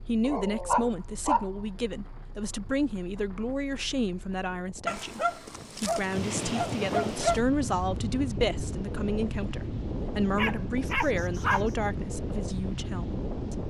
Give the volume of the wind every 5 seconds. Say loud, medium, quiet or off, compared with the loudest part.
quiet, loud, loud.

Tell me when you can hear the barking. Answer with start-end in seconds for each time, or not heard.
0.2-1.5, 4.8-7.4, 10.3-11.8.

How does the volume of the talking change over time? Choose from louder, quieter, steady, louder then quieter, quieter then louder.
steady.